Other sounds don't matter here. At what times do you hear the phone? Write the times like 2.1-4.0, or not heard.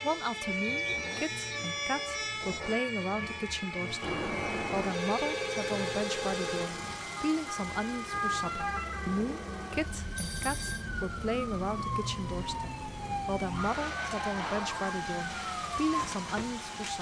4.0-6.7, 10.2-10.8.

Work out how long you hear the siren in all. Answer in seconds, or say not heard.
17 s.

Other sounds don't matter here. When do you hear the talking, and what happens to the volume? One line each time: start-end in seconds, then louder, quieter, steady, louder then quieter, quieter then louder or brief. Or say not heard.
0.0-16.9 steady.